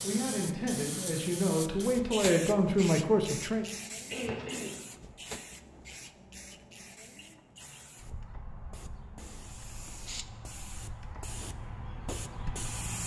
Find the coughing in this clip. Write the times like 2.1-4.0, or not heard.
4.0-4.8.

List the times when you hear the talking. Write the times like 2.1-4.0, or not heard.
0.0-3.6.